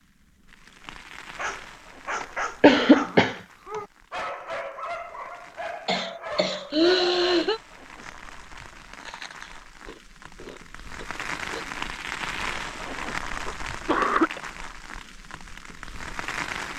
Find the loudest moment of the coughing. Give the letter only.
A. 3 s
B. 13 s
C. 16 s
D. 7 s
A.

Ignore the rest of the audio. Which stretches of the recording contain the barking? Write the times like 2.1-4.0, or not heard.
1.4-7.5.